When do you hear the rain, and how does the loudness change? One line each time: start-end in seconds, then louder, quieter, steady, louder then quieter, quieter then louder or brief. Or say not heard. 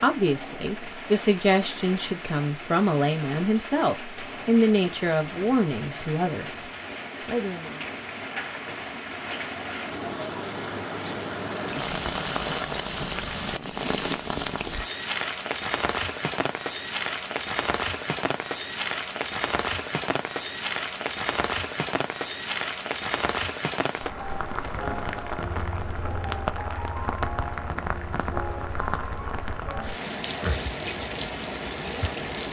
0.0-32.4 louder.